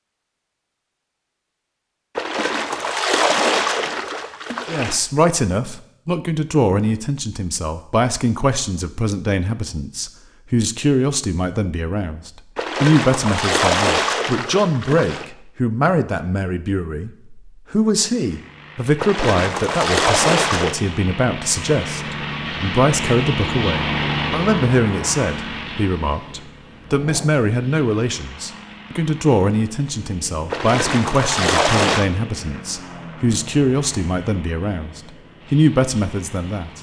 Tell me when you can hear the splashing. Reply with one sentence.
You can hear the splashing from 2.1 to 5.0 s, from 12.6 to 15.2 s, from 18.9 to 20.8 s and from 30.5 to 32.0 s.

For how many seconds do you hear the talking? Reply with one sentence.
You can hear the talking for 32 seconds altogether.